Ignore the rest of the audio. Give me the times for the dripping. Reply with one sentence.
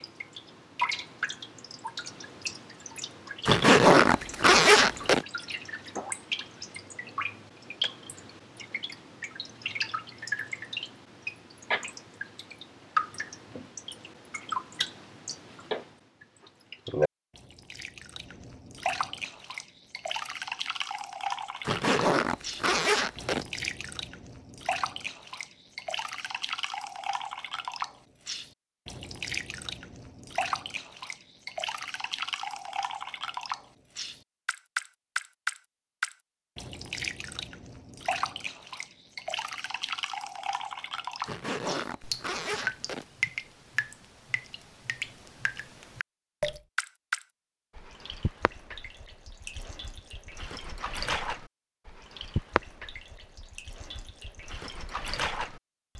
The dripping can be heard from 0.0 to 55.9 s.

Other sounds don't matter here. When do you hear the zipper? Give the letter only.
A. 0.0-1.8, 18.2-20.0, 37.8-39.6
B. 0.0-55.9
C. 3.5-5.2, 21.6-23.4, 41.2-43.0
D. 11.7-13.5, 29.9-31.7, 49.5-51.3
C.